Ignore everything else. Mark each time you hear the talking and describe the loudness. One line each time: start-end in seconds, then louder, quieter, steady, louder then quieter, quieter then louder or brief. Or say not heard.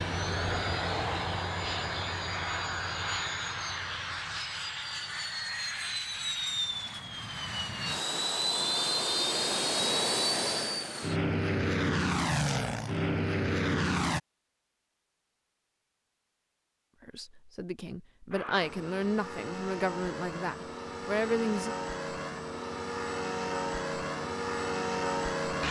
17.0-21.8 louder.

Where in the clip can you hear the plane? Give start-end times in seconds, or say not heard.
0.0-14.2, 18.3-25.6.